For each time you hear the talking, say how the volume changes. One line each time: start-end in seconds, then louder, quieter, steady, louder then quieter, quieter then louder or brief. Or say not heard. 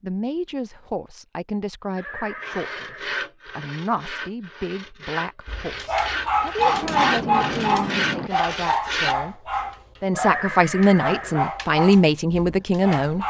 0.0-13.2 louder.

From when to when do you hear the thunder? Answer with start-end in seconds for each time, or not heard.
6.5-8.3.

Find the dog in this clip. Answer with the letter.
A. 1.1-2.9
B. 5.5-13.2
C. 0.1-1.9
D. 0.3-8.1
B.